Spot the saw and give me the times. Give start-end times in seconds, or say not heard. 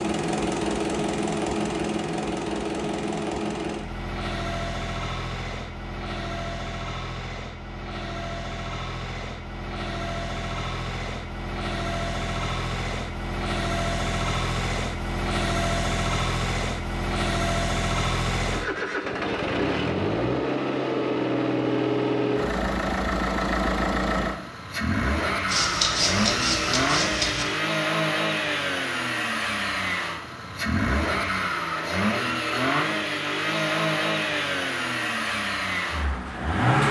25.4-27.4.